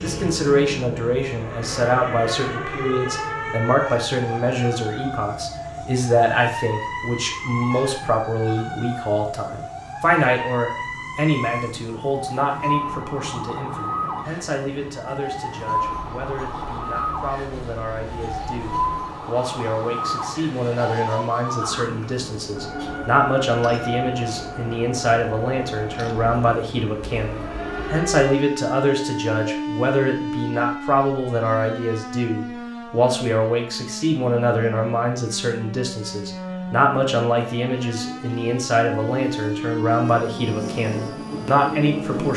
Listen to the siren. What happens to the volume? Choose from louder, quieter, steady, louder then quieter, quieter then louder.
steady.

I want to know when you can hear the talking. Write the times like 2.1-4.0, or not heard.
0.0-42.3.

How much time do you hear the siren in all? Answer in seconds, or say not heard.
42 s.